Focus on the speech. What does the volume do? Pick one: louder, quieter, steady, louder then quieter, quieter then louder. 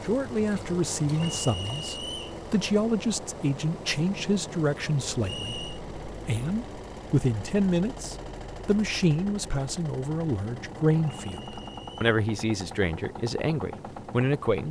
steady.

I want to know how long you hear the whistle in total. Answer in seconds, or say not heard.
3 s.